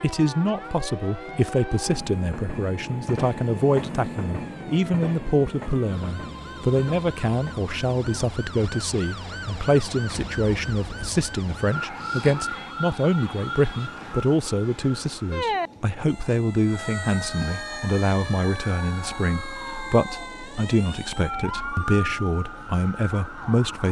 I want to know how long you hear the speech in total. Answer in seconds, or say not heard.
24 s.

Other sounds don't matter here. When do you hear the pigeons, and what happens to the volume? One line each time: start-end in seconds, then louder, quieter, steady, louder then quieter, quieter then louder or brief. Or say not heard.
not heard.